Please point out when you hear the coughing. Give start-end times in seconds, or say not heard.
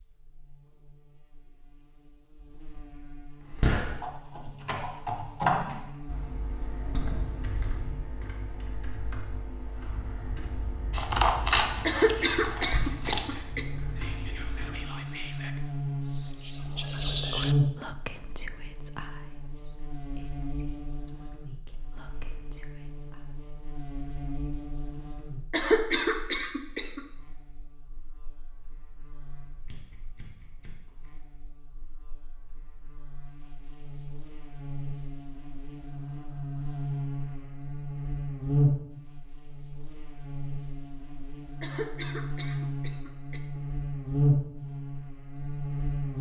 11.8-13.7, 25.5-27.0, 41.6-43.6.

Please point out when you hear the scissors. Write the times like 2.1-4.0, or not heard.
10.9-13.3, 29.6-30.7.